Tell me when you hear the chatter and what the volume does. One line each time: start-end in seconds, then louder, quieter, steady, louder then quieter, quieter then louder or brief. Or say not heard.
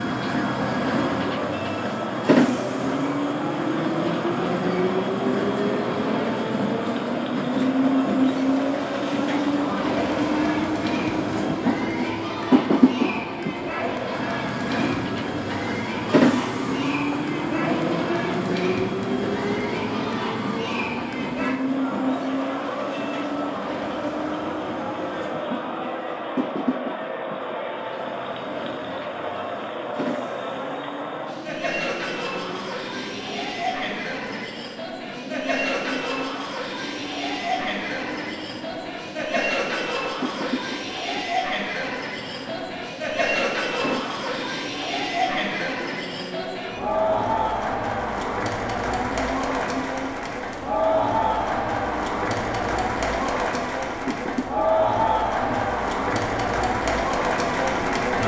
0.2-58.2 louder.